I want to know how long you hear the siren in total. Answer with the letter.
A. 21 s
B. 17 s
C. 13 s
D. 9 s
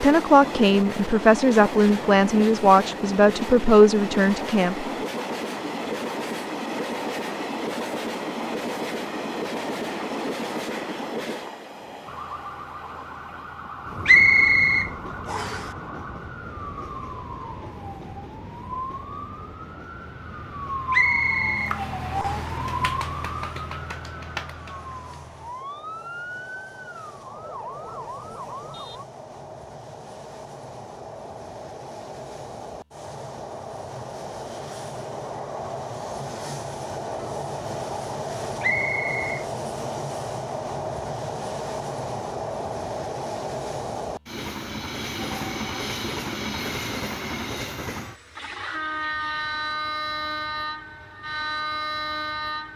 B.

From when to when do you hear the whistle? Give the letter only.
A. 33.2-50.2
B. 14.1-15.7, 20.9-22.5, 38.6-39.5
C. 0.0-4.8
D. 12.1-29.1
B.